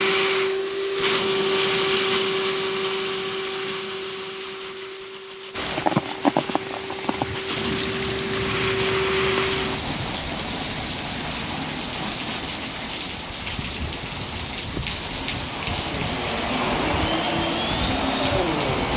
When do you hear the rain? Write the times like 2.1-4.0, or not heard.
5.5-18.9.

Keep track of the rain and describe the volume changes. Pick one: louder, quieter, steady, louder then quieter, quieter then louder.
steady.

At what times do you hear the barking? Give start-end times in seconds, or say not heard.
not heard.